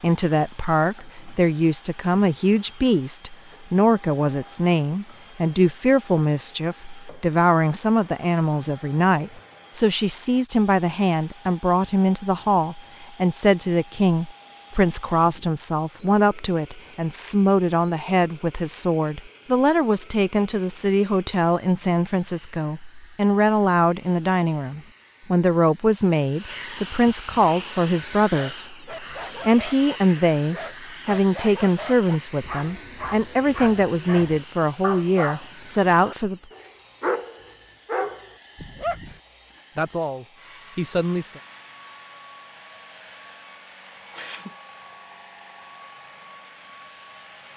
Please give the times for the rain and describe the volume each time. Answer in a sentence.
The rain can't be heard in this clip.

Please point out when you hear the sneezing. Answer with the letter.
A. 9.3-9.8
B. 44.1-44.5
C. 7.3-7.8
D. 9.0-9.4
B.